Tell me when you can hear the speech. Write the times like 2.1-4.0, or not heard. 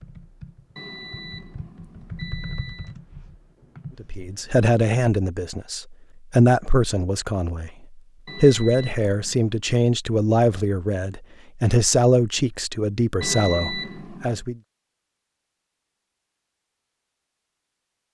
4.0-14.6.